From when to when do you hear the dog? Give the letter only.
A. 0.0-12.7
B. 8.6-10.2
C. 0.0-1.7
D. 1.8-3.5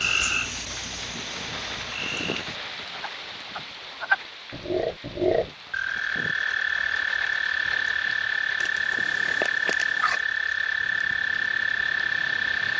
B.